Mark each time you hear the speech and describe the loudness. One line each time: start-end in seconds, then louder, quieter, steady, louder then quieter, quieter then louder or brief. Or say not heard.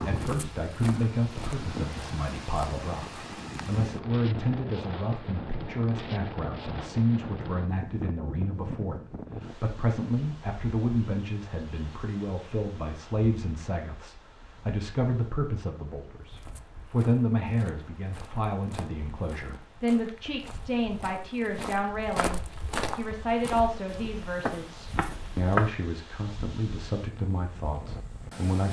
0.1-28.6 steady.